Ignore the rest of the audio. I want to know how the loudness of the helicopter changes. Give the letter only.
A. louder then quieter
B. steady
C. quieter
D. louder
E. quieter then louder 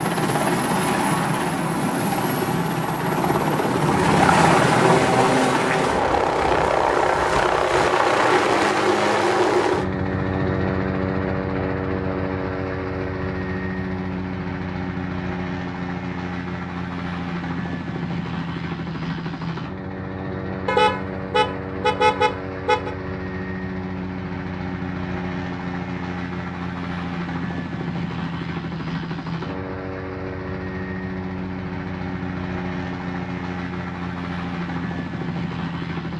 C.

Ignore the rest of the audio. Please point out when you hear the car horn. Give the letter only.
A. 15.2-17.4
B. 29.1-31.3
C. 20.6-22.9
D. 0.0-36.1
C.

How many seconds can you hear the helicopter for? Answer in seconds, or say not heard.
36 s.